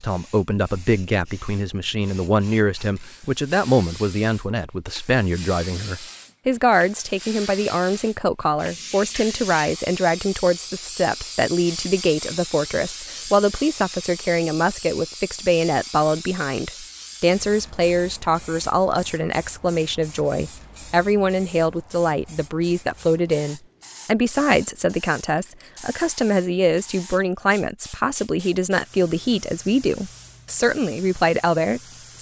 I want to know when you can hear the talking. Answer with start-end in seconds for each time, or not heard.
0.0-32.1.